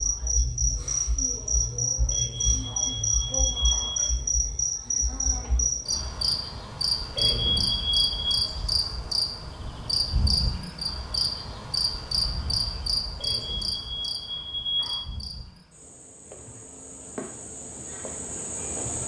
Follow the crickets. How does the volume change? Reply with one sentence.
The loudness of the crickets goes down.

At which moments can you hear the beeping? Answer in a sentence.
You can hear the beeping from 2.1 to 4.1 s, from 7.2 to 8.4 s and from 13.2 to 15.1 s.